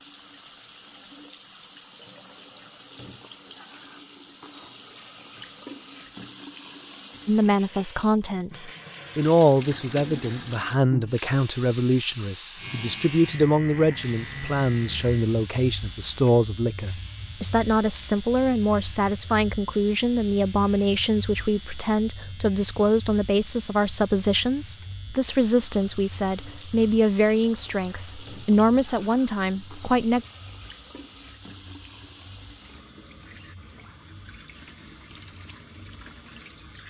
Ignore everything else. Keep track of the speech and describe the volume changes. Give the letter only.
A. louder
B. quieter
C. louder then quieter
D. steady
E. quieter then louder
D.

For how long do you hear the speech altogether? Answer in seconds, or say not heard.
23 s.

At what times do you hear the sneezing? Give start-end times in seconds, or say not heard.
not heard.